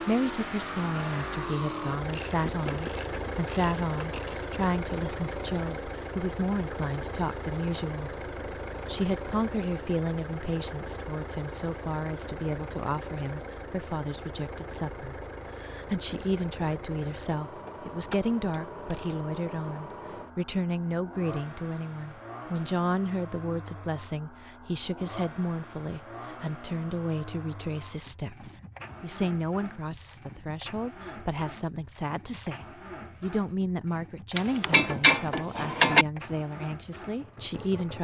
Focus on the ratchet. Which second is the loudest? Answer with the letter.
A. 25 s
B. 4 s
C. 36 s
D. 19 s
C.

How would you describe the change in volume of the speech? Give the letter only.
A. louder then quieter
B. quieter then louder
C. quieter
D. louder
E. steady
E.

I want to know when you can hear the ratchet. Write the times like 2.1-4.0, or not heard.
2.0-4.5, 17.6-19.2, 34.4-36.0.